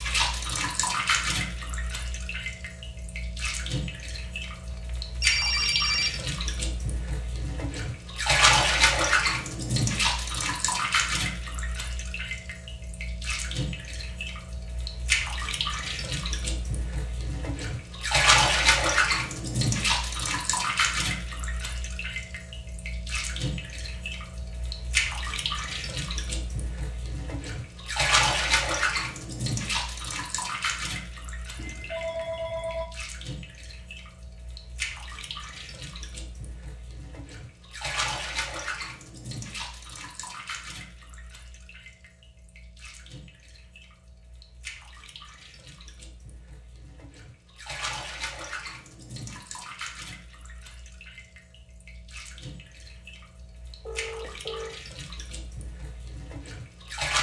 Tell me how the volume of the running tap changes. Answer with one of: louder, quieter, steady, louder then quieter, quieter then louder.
quieter.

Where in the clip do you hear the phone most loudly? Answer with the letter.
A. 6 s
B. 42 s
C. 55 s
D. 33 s
A.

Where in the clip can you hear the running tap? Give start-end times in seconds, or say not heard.
0.0-57.1.